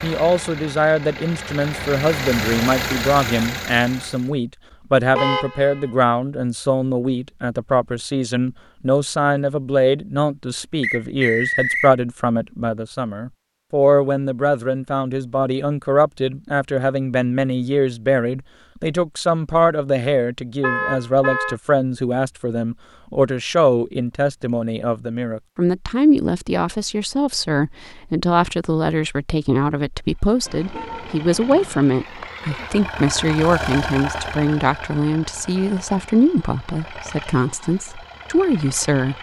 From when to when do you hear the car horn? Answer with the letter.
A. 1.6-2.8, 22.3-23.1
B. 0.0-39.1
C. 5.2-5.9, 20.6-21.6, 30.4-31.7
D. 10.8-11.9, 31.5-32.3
C.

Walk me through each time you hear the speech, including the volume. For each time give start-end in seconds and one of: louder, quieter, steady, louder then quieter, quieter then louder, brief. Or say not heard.
0.0-39.1 steady.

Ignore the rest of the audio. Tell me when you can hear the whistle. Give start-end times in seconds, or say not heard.
10.8-11.9, 31.5-32.3.